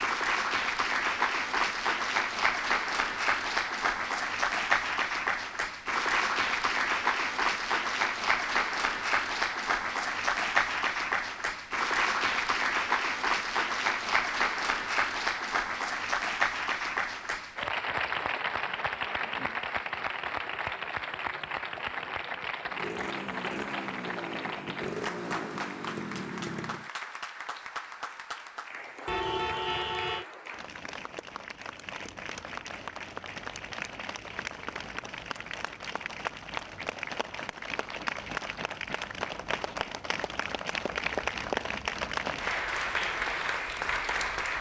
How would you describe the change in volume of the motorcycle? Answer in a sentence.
The loudness of the motorcycle stays about the same.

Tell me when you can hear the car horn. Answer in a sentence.
You can hear the car horn from 29.1 to 30.2 s.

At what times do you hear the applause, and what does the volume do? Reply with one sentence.
You can hear the applause from 0.0 to 44.5 s, getting quieter then louder.